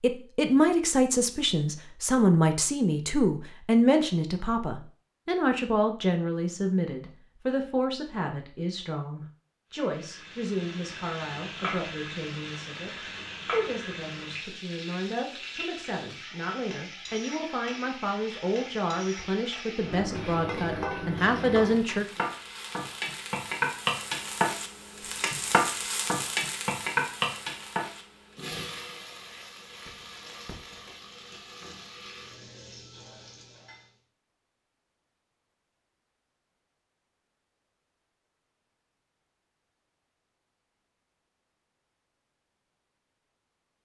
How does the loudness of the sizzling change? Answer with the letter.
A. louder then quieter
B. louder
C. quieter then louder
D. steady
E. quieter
A.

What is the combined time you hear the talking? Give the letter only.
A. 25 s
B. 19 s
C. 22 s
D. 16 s
C.